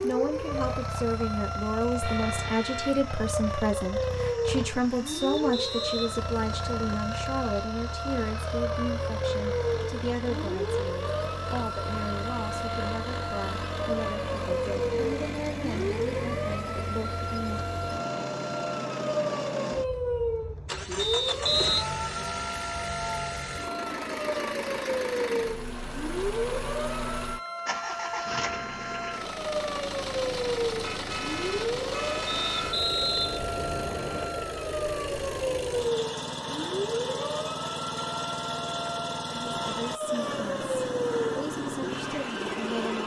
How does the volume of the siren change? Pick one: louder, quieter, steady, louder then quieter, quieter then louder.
steady.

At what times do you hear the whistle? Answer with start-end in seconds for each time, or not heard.
5.0-7.0, 20.9-21.9, 32.2-34.3.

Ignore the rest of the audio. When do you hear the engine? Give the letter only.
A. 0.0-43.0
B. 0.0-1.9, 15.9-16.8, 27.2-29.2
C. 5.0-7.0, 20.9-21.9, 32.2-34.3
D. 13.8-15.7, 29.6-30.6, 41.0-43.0
A.